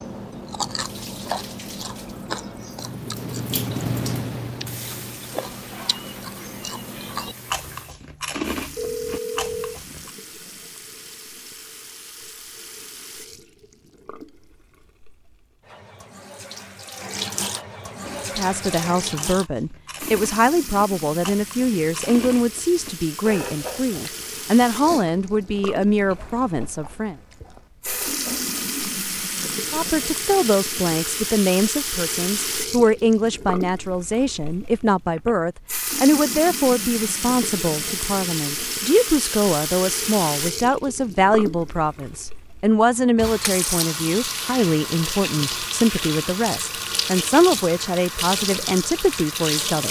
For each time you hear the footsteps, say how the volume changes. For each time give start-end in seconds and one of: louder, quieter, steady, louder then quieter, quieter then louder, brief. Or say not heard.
not heard.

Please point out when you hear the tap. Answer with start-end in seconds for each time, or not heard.
0.0-49.8.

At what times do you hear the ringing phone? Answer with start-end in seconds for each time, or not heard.
8.8-9.8, 34.9-35.4.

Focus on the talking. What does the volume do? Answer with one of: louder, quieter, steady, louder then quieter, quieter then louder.
steady.